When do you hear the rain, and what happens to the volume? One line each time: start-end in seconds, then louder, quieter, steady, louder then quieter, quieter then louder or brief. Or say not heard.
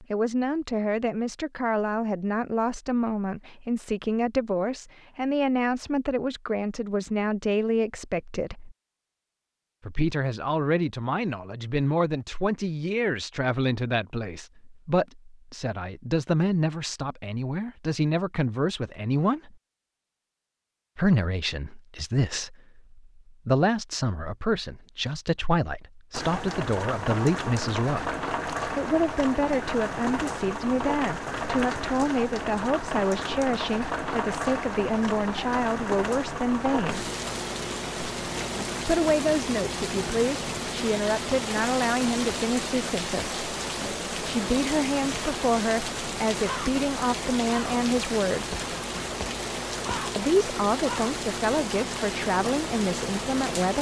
26.1-53.7 steady.